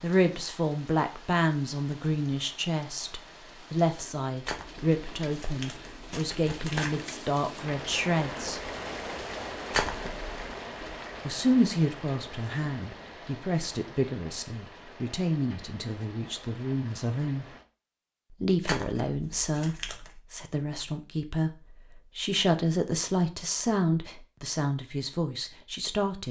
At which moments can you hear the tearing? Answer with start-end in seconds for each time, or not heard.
4.5-7.0, 9.7-10.3, 18.6-20.1.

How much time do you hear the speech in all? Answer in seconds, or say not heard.
23 s.